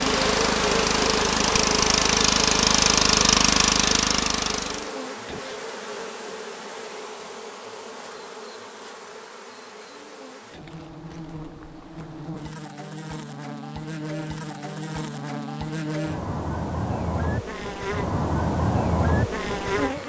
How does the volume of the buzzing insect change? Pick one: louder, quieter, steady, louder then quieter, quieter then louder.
quieter then louder.